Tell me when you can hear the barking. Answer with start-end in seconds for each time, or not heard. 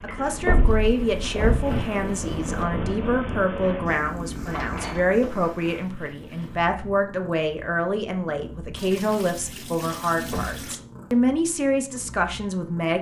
not heard.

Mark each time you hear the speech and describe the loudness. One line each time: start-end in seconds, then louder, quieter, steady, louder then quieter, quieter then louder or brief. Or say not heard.
0.0-12.9 steady.